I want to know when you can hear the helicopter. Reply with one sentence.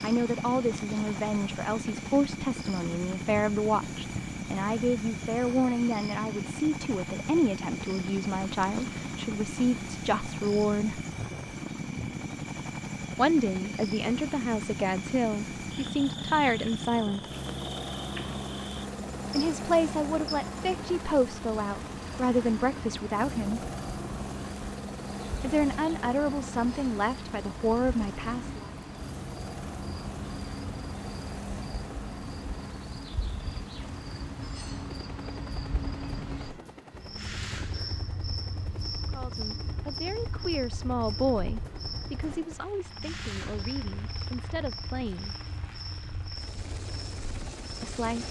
You can hear the helicopter from 0.0 to 48.2 s.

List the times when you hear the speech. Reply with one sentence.
The speech can be heard from 0.0 to 11.0 s, from 13.2 to 17.2 s, from 19.3 to 23.6 s, from 25.4 to 28.7 s, from 39.0 to 45.4 s and from 47.8 to 48.2 s.